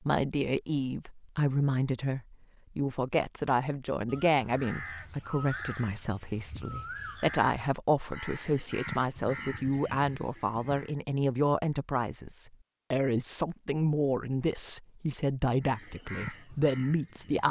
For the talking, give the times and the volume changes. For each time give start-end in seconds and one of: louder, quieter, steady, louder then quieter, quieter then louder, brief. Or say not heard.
0.0-17.4 steady.